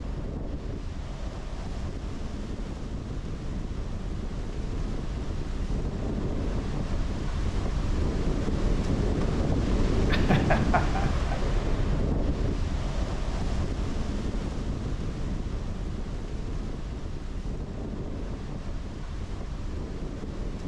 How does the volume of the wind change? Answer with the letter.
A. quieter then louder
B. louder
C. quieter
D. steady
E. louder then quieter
E.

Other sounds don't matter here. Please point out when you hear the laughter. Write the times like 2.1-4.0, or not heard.
10.1-11.3.